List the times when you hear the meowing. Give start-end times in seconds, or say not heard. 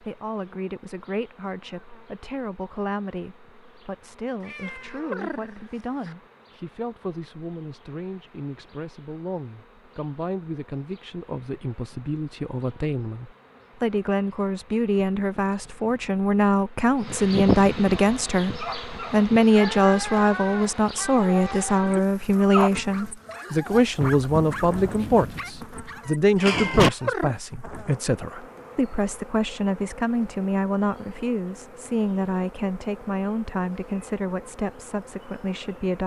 4.4-6.2, 26.4-27.4.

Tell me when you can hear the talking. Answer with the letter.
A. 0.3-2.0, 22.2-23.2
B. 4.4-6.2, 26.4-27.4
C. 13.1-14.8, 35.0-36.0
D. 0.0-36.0
D.